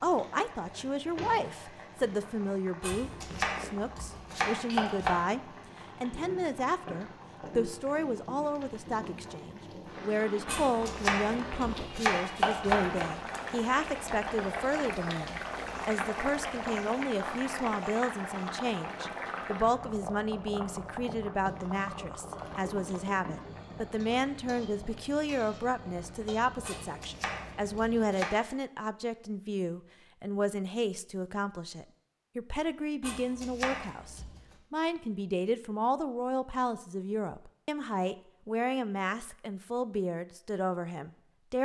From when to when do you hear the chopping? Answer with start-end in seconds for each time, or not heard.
2.8-5.2, 10.4-13.1, 26.6-28.4, 33.0-34.5.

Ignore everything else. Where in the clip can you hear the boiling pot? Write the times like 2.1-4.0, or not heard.
0.0-28.1.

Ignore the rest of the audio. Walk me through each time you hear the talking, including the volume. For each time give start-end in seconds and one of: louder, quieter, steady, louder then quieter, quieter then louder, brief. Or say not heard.
0.0-41.6 steady.